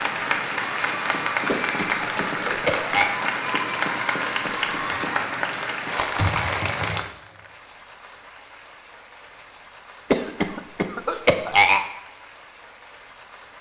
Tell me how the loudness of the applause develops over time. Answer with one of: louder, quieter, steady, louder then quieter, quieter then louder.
quieter.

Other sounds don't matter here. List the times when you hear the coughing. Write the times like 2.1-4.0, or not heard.
1.4-3.1, 10.1-11.8.